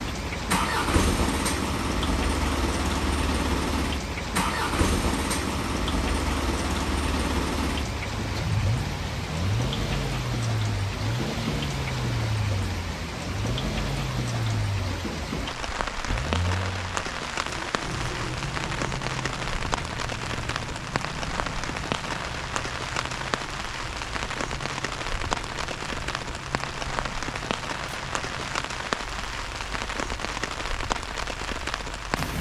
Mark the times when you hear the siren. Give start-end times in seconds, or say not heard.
not heard.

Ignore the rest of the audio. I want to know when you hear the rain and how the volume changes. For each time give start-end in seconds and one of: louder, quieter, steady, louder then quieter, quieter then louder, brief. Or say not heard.
0.0-32.3 steady.